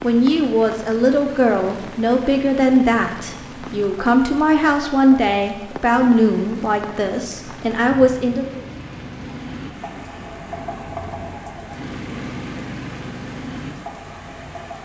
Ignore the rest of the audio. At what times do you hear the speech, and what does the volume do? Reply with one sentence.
You can hear the speech from 0.0 to 8.6 s, at a steady volume.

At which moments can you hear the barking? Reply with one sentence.
You can't hear the barking here.